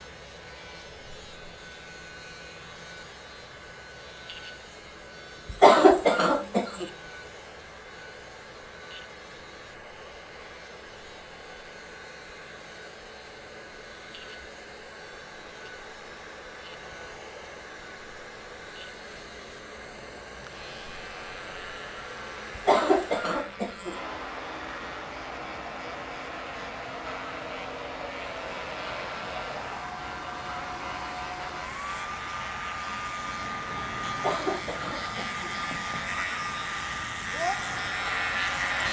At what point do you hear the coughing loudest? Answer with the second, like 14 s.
6 s.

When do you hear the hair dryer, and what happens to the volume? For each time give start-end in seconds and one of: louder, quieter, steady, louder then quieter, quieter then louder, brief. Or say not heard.
0.0-38.8 louder.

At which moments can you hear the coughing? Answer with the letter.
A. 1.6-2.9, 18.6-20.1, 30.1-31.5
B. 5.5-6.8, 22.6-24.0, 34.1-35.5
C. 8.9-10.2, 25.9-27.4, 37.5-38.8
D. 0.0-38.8
B.